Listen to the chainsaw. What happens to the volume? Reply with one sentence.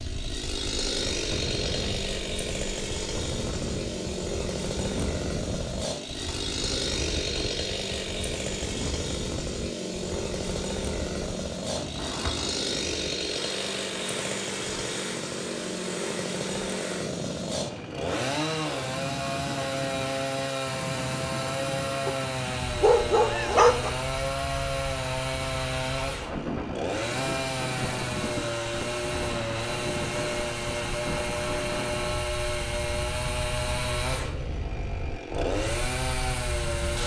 The volume of the chainsaw stays about the same.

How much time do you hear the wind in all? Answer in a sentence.
The wind can be heard for 37 seconds in total.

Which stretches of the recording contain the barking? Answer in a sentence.
The barking can be heard from 22.1 to 23.9 s.